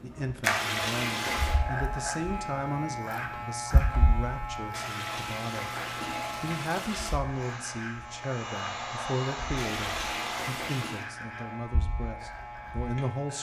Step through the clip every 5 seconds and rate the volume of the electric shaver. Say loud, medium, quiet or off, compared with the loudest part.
loud, medium, medium.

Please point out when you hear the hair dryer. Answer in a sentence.
The hair dryer can be heard from 7.2 to 10.6 s.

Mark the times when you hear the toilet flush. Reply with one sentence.
The toilet flush can be heard from 0.4 to 1.6 s, from 4.7 to 7.2 s and from 9.6 to 11.1 s.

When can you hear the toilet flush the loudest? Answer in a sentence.
The volume of the toilet flush peaks at 1 second.